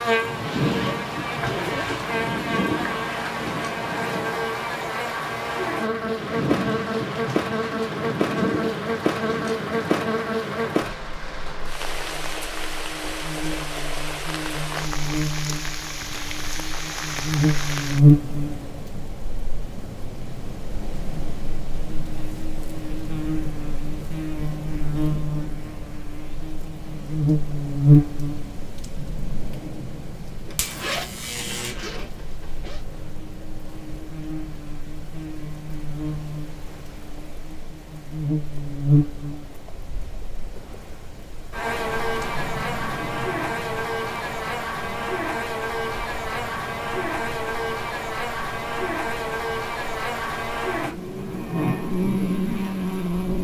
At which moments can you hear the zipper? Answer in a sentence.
The zipper can be heard from 0.3 to 2.0 s and from 30.4 to 32.8 s.